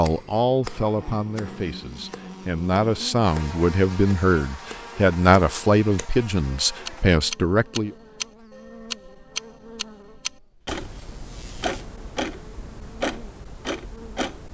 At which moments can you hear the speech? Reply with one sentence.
The speech can be heard from 0.0 to 8.0 s.